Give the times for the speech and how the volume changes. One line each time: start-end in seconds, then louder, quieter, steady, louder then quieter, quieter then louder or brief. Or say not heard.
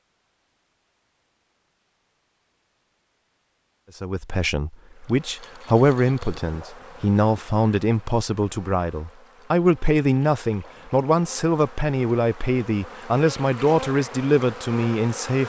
4.0-15.4 steady.